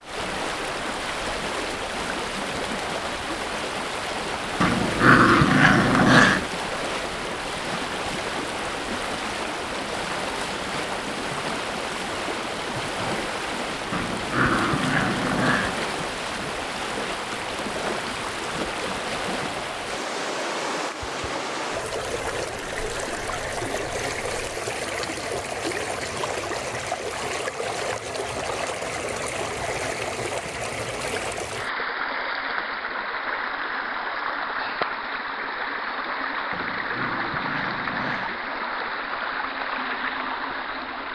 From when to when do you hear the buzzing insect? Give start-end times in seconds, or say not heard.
not heard.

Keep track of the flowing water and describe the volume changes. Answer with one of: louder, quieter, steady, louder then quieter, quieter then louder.
steady.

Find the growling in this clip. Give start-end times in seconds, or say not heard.
4.6-6.5, 13.9-15.8, 36.5-38.4.